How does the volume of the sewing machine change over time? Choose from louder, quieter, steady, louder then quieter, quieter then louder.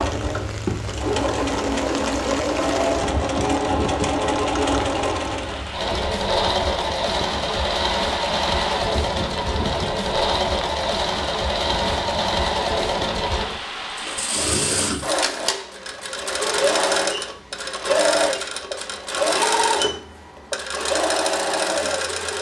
steady.